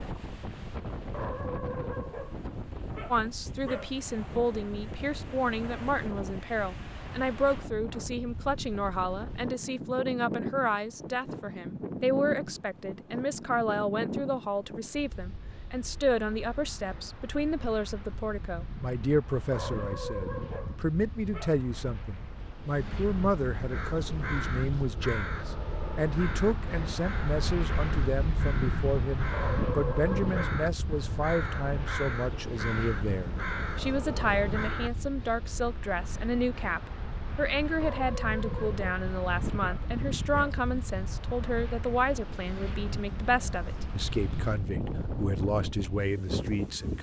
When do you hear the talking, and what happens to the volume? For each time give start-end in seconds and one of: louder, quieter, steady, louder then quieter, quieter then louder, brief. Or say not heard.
3.1-46.9 steady.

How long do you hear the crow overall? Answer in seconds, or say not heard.
11 s.